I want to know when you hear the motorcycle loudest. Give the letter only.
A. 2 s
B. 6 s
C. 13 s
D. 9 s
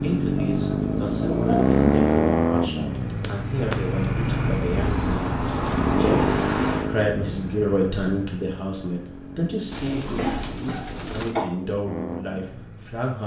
A.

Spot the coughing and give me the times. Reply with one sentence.
You can hear the coughing from 3.1 to 4.0 s and from 9.9 to 11.4 s.